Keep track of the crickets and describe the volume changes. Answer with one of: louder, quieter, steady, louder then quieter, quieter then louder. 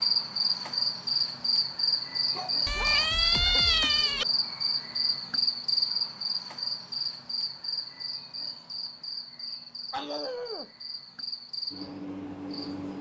quieter.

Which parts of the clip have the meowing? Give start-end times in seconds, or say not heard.
2.6-4.2.